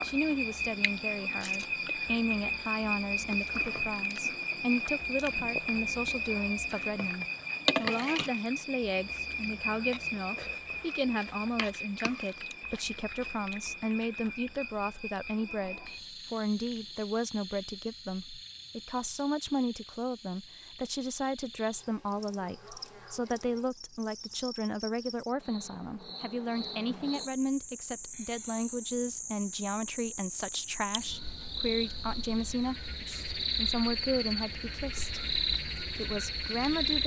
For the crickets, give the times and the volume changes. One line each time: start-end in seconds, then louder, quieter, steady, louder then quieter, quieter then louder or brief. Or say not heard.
0.0-37.0 quieter then louder.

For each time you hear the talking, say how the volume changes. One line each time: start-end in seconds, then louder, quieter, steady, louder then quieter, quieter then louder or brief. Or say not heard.
0.0-37.0 steady.